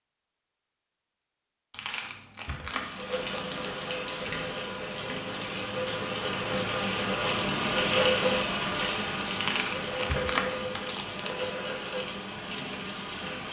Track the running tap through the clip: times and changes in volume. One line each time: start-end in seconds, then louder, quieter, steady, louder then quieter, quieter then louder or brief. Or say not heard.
2.6-13.4 louder then quieter.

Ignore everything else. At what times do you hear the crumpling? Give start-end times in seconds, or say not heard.
1.7-3.8, 9.3-11.3.